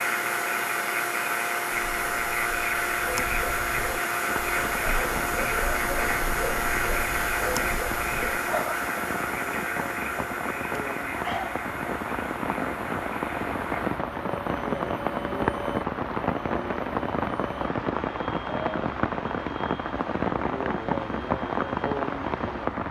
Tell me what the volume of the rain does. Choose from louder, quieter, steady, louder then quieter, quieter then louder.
louder.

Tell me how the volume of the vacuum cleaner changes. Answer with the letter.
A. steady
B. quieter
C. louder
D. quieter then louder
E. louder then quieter
B.